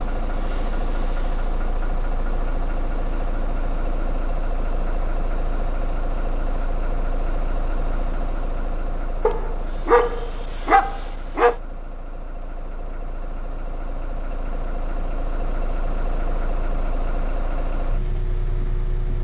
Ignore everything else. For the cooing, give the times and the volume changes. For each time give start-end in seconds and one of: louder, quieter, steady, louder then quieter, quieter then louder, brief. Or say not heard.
not heard.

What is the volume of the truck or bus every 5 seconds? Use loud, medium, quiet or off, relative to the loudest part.
loud, loud, medium, loud.